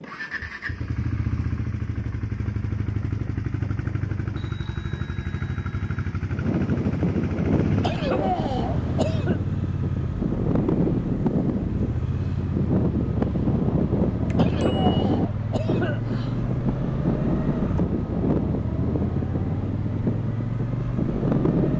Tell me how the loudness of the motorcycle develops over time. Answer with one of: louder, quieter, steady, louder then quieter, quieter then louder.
steady.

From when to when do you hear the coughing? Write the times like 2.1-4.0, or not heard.
7.8-9.4, 14.3-16.0.